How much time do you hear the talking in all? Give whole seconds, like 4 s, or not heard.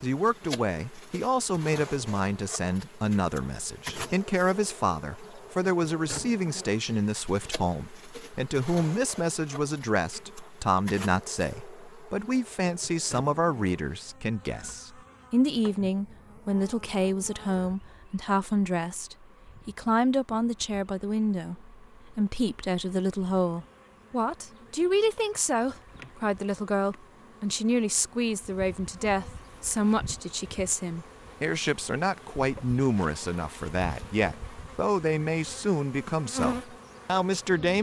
38 s.